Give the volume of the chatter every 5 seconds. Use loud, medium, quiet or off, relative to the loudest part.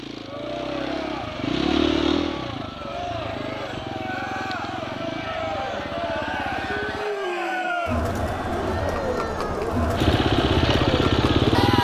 medium, loud, loud.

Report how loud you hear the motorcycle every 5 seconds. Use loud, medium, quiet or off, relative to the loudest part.
medium, quiet, loud.